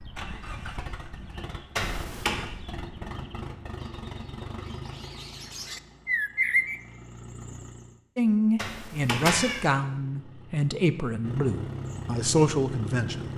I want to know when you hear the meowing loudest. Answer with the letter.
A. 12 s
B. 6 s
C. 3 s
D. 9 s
D.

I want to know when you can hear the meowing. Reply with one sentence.
The meowing can be heard from 1.8 to 2.4 s and from 8.6 to 9.7 s.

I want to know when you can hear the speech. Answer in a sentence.
The speech can be heard from 8.2 to 13.3 s.